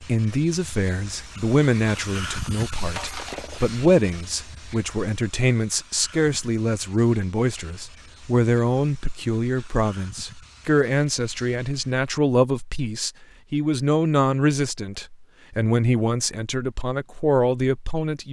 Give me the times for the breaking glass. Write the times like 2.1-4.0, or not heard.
2.9-3.8.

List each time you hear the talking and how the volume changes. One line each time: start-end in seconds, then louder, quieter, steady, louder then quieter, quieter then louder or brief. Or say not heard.
0.0-18.2 steady.